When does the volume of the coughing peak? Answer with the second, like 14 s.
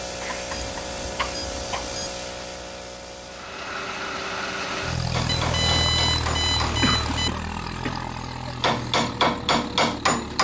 7 s.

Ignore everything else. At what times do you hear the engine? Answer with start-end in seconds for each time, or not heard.
3.2-10.3.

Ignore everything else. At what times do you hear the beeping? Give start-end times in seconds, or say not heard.
0.5-2.1, 5.2-7.3.